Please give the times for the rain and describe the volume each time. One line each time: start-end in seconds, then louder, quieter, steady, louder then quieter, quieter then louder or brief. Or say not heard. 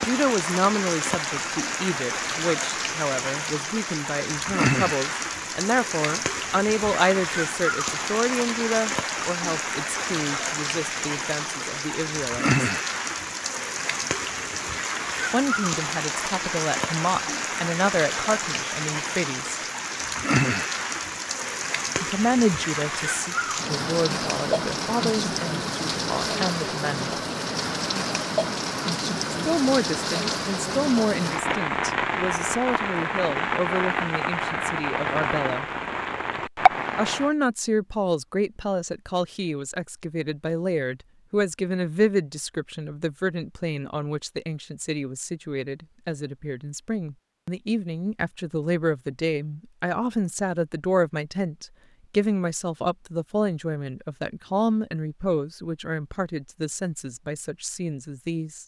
0.0-37.3 steady.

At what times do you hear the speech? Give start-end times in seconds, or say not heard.
0.0-12.5, 15.3-19.6, 22.0-27.1, 29.3-35.6, 37.0-58.6.